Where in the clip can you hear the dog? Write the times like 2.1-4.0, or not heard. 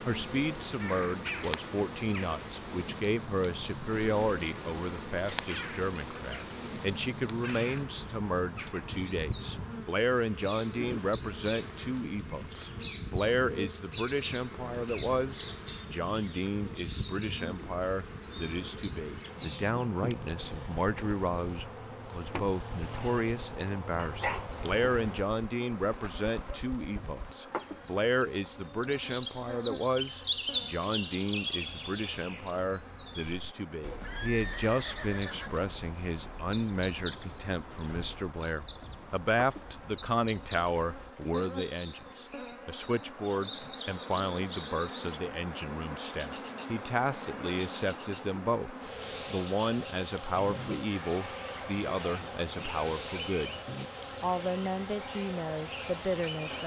23.9-24.9.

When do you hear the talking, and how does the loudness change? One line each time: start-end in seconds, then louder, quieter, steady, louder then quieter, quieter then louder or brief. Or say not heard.
0.1-53.6 steady
54.2-56.6 brief.